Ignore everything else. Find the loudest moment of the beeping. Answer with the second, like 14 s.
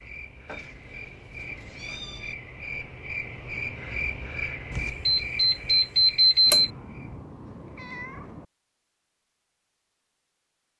6 s.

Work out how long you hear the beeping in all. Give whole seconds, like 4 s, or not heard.
2 s.